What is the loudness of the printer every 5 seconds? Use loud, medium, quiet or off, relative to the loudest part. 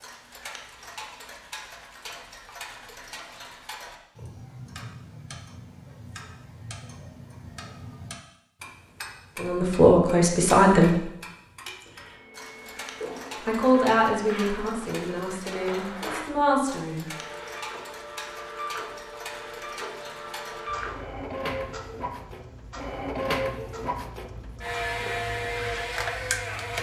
off, off, medium, medium, loud, loud.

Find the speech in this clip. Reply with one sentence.
You can hear the speech from 9.3 to 11.0 s and from 13.4 to 17.1 s.